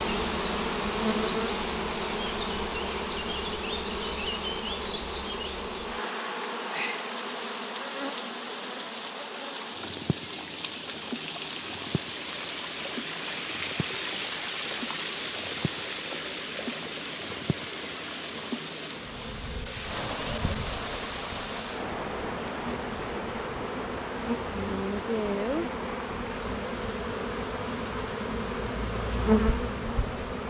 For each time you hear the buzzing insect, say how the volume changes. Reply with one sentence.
You can hear the buzzing insect from 0.0 to 30.4 s, getting quieter then louder.